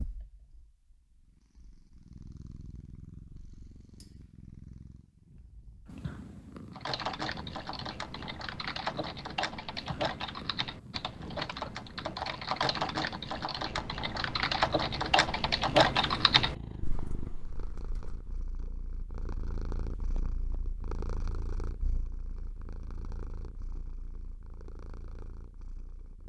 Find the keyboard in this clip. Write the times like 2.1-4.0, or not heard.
6.8-18.4.